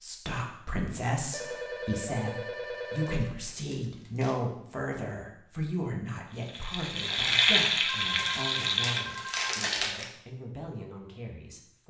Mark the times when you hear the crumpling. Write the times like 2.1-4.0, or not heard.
3.1-4.3, 8.1-10.1.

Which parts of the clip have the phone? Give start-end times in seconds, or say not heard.
1.3-3.4, 7.8-9.4.